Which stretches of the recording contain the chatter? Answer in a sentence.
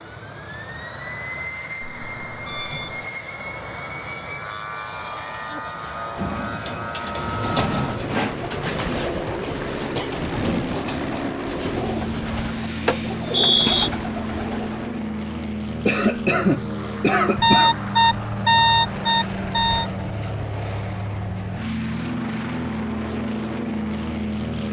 The chatter can't be heard in this clip.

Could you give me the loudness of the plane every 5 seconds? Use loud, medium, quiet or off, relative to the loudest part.
medium, loud, loud, loud, loud.